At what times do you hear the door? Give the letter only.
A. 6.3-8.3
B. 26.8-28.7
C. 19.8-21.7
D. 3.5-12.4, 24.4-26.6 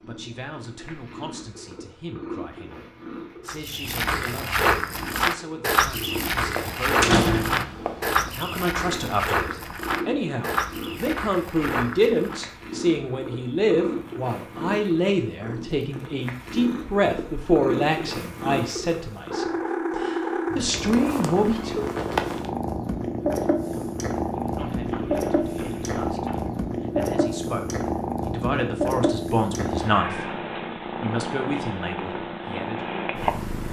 A.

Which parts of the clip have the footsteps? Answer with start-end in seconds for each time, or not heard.
3.5-12.4, 24.4-26.6.